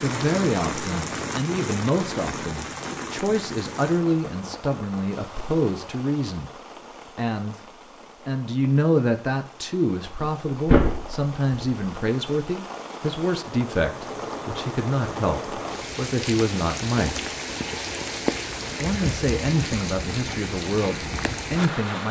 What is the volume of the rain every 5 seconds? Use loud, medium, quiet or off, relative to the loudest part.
loud, quiet, medium, loud, loud.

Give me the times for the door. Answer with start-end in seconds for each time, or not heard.
10.2-11.7.